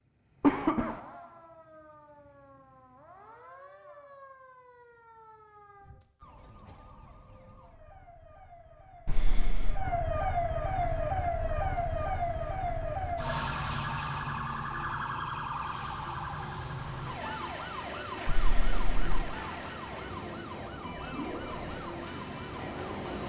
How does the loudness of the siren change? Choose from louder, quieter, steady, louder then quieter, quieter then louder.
louder then quieter.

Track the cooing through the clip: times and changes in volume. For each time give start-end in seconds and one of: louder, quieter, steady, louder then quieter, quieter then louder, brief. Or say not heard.
not heard.